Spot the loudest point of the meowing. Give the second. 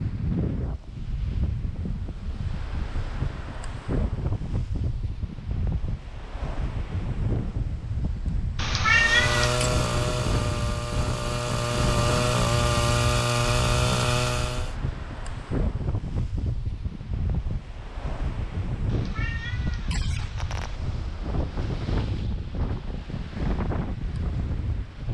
9 s.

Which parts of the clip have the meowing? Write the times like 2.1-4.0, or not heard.
8.6-9.7, 18.9-20.8.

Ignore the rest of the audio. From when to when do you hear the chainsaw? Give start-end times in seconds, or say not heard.
8.8-14.8.